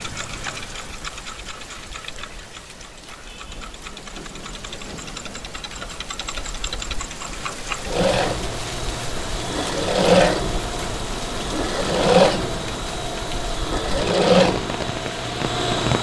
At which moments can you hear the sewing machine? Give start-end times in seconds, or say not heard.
0.0-15.9.